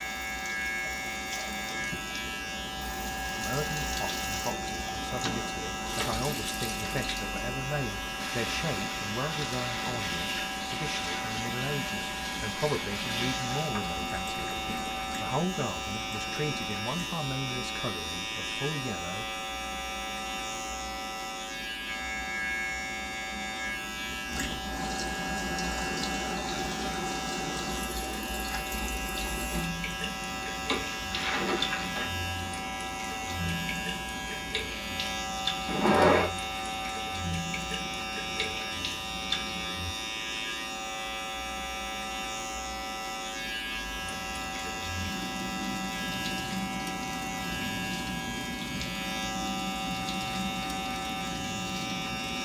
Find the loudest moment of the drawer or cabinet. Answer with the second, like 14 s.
36 s.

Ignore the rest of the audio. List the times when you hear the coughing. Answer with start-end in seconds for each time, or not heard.
not heard.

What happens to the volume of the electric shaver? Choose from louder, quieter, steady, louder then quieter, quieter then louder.
steady.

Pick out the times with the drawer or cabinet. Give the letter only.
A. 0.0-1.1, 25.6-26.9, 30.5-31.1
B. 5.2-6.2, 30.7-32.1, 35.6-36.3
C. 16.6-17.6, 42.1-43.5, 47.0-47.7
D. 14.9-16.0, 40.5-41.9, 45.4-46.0
B.